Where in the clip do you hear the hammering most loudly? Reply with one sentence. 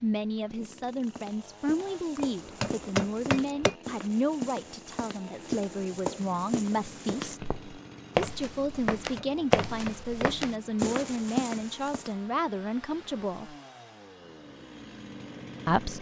The loudest moment of the hammering is at 3 seconds.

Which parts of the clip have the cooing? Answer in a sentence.
You can't hear the cooing here.